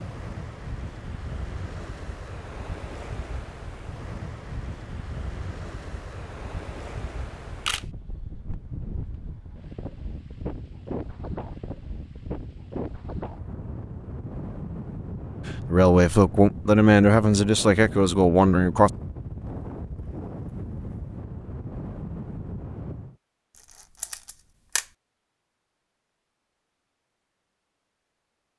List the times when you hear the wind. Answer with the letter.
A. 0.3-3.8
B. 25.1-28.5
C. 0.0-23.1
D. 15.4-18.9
C.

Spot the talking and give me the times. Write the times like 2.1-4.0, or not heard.
15.4-18.9.